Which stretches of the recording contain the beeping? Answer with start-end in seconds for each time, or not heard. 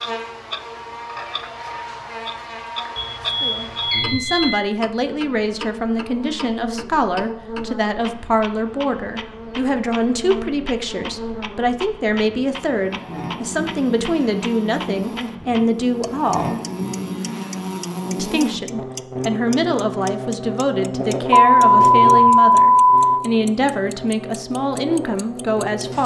3.0-4.5, 21.3-23.1.